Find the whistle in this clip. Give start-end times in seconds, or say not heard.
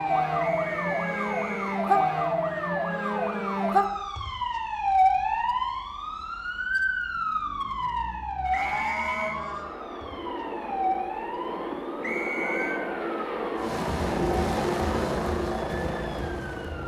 0.3-1.8, 8.5-9.4, 12.0-12.8.